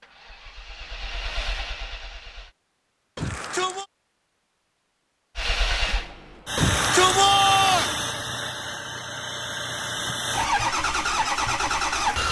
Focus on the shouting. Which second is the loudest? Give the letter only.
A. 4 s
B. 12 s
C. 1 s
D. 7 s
D.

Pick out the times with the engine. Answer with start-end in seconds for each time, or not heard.
0.0-2.5, 5.3-12.2.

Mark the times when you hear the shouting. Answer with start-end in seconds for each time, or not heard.
3.1-3.9, 6.5-8.0.